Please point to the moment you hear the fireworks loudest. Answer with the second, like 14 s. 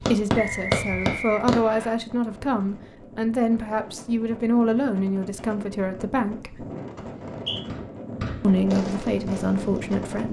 1 s.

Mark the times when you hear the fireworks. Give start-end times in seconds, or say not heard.
0.0-1.6, 7.0-10.2.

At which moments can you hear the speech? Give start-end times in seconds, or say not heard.
0.0-6.7, 8.4-10.2.